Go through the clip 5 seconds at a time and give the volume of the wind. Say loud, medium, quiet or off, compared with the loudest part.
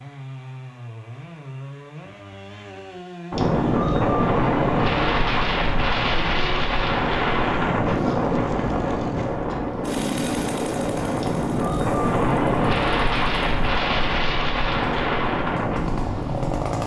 loud, loud, loud, medium.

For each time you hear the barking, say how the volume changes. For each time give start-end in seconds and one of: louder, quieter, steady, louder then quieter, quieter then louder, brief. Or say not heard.
not heard.